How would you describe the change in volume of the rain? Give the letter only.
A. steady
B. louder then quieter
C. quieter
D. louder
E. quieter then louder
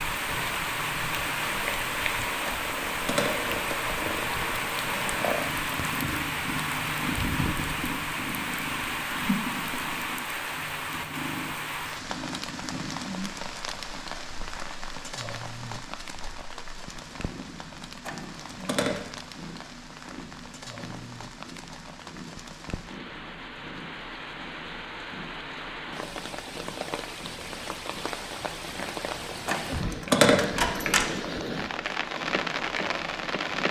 E.